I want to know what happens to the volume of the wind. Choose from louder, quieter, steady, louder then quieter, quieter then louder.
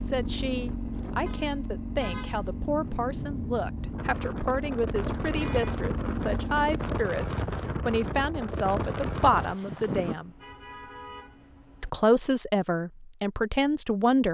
louder.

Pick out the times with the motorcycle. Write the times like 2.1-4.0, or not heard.
0.0-7.0.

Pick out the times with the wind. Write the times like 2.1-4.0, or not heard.
0.0-10.2.